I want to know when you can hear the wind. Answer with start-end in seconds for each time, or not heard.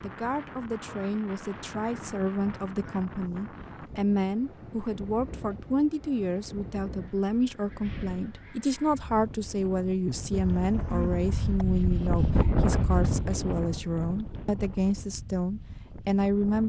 0.0-16.6.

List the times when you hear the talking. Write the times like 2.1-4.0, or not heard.
0.0-16.6.